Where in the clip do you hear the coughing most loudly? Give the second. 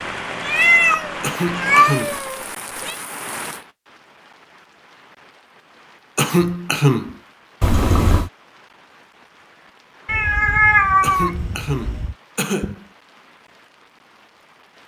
7 s.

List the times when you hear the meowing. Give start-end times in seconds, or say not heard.
0.5-3.0, 7.6-8.3, 10.1-12.2.